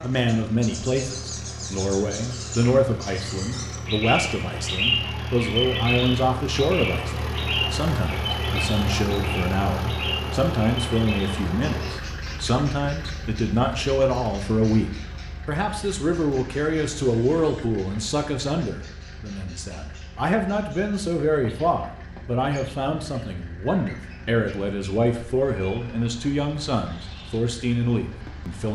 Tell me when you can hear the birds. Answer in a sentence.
The birds can be heard from 0.0 to 28.6 s.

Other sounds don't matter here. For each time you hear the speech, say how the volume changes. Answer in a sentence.
You can hear the speech from 0.0 to 28.6 s, at a steady volume.